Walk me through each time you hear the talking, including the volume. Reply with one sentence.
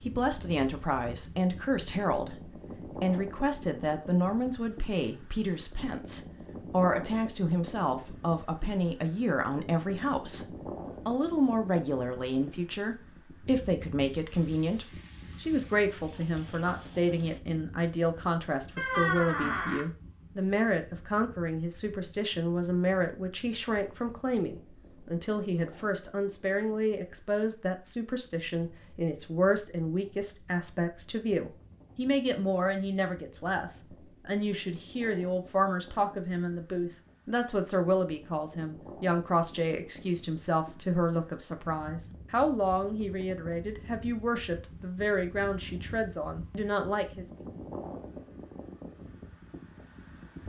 The talking can be heard from 0.0 to 47.2 s, at a steady volume.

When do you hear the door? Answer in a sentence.
The door can be heard from 18.8 to 19.9 s.